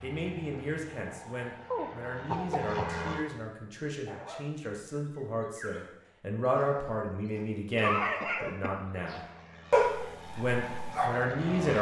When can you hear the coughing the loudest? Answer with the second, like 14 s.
8 s.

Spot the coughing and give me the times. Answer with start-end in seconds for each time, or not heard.
1.7-2.9, 7.8-9.2.